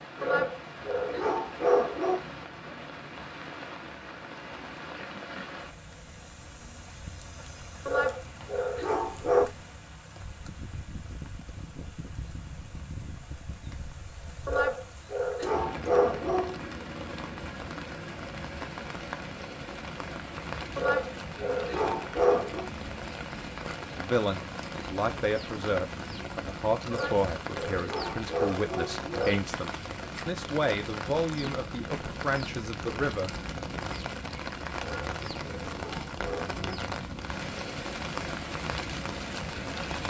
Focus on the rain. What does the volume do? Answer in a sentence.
The volume of the rain goes up.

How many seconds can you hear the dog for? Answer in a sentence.
The dog can be heard for 12 seconds in total.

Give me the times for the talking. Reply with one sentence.
You can hear the talking from 23.9 to 33.3 s.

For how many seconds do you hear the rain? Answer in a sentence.
You can hear the rain for 40 seconds altogether.